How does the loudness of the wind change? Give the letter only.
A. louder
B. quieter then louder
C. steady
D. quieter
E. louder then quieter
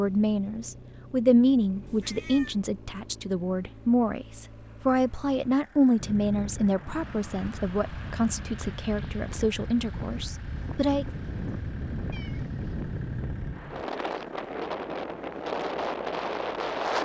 A.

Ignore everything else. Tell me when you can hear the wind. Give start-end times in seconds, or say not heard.
6.0-17.0.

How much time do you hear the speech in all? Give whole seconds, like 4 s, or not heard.
11 s.